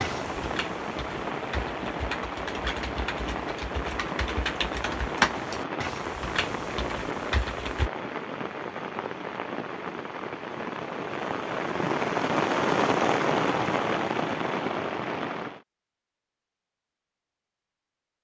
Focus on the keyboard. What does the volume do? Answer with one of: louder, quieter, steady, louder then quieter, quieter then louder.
louder then quieter.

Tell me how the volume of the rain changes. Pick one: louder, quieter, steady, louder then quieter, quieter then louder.
louder.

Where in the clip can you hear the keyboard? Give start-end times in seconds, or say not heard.
0.0-7.9.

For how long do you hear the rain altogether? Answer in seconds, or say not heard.
16 s.